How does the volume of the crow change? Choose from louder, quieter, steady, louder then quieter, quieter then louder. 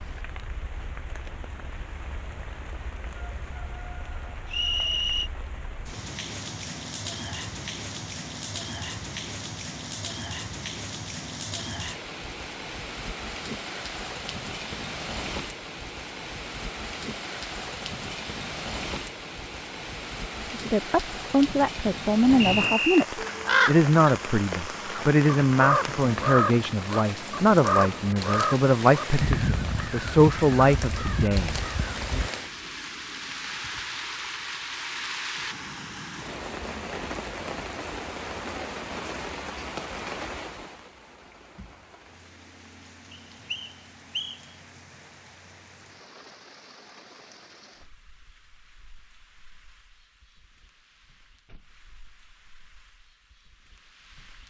quieter.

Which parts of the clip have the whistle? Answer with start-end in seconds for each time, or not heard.
4.5-5.3, 22.4-23.1, 43.1-44.4.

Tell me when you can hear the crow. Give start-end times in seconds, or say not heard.
22.2-32.3.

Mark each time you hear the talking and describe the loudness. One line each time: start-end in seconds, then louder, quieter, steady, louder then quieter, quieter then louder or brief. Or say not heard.
20.5-32.2 steady.